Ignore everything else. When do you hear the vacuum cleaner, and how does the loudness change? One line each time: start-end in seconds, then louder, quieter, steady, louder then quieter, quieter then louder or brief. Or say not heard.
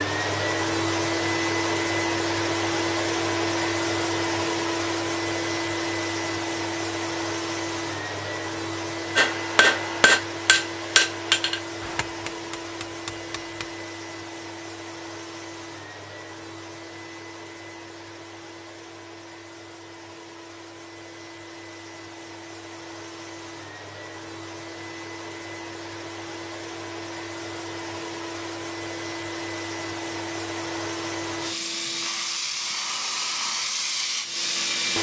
0.0-34.9 quieter then louder.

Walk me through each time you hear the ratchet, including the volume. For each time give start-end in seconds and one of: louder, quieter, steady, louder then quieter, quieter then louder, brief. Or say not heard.
not heard.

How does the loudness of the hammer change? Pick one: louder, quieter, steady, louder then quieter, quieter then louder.
quieter.